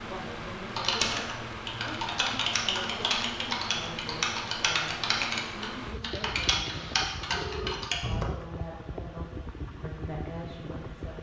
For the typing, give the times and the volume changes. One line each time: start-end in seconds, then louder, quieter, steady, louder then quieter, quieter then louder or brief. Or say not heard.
0.8-8.3 steady.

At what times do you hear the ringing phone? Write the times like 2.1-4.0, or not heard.
6.7-7.8.